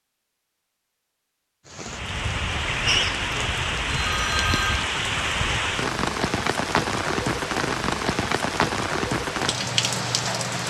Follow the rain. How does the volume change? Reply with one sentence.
The volume of the rain stays about the same.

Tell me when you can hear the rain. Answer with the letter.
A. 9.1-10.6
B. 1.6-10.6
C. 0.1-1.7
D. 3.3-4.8
B.